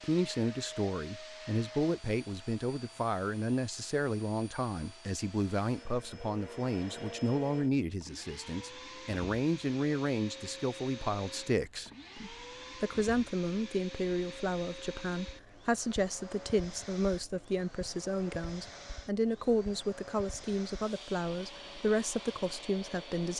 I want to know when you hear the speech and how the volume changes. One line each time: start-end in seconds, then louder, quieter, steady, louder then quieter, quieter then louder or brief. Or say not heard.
0.0-23.3 steady.